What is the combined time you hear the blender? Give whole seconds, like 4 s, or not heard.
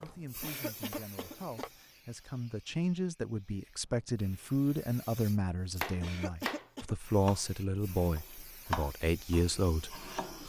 not heard.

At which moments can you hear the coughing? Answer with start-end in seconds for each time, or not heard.
0.4-1.7, 6.0-7.0.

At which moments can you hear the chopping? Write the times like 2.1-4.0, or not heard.
0.0-1.7, 5.8-10.4.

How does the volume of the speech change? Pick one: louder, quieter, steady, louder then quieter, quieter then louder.
louder.